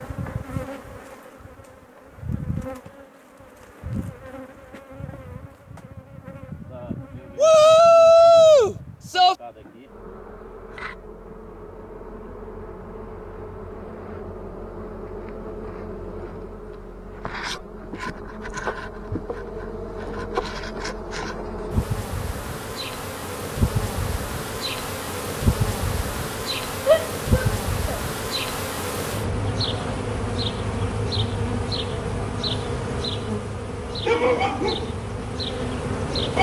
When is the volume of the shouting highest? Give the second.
8 s.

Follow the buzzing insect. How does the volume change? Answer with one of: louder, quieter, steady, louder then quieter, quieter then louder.
louder.